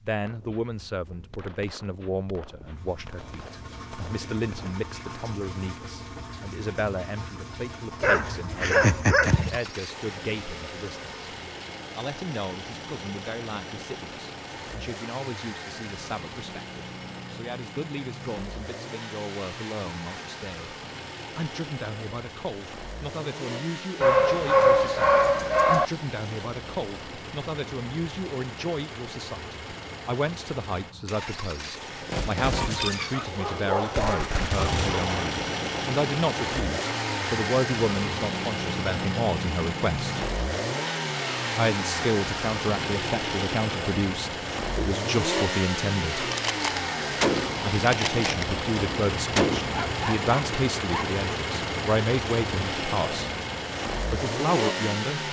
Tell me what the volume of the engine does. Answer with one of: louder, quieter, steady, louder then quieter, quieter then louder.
louder.